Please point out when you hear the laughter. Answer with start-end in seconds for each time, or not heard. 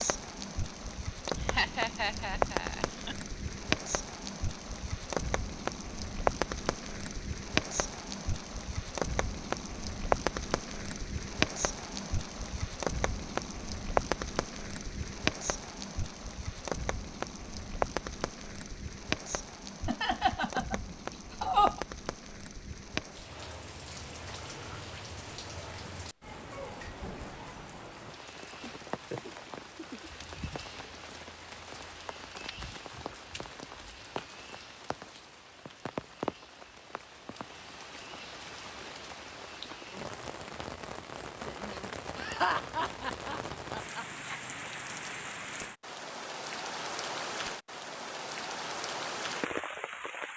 1.3-3.1, 19.9-21.8, 42.1-44.0.